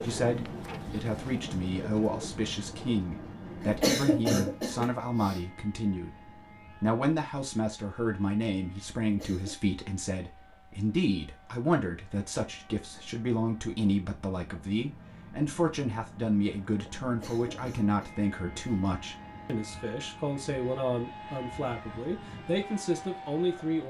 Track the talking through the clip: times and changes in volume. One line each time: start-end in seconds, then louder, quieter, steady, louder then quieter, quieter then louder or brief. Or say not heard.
0.0-23.8 steady.